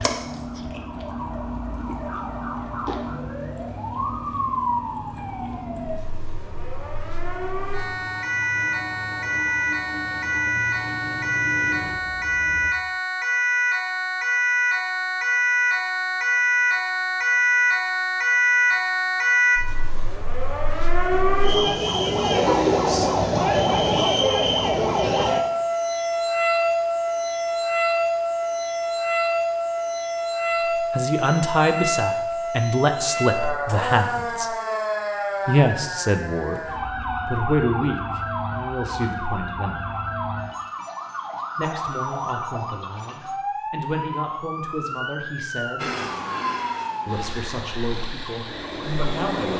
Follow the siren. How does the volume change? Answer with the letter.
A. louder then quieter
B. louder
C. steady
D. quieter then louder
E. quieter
A.